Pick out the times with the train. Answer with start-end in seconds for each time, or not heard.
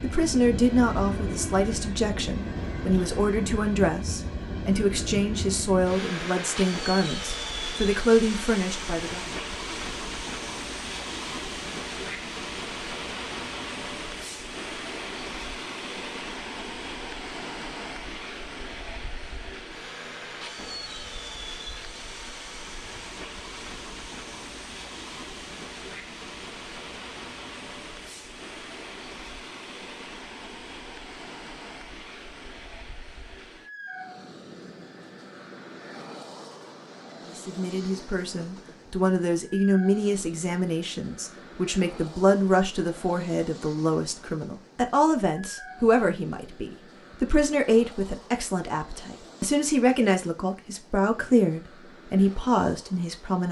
0.0-53.4.